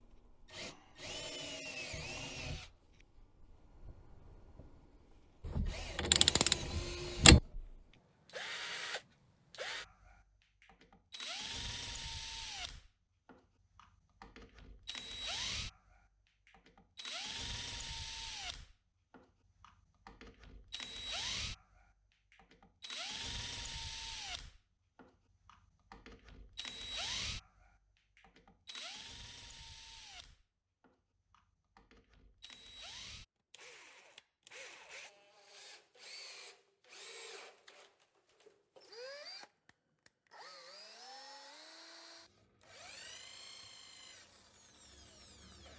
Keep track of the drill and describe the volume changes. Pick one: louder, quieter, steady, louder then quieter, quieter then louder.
quieter.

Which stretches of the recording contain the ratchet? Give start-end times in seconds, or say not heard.
5.5-7.4.